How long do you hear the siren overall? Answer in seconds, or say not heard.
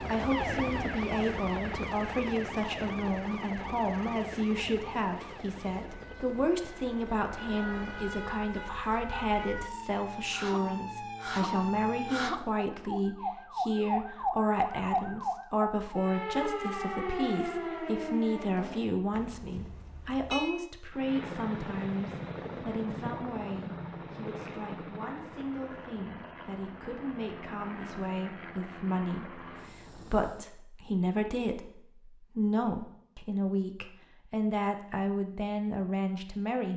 19 s.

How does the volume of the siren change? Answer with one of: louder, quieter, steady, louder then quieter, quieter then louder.
quieter then louder.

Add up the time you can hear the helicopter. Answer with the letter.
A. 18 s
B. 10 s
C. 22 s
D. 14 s
A.